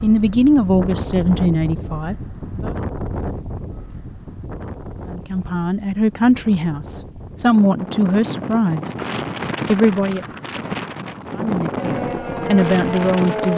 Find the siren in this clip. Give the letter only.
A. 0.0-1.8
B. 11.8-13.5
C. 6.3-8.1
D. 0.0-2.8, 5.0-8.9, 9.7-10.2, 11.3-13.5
B.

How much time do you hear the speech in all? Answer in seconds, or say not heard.
9 s.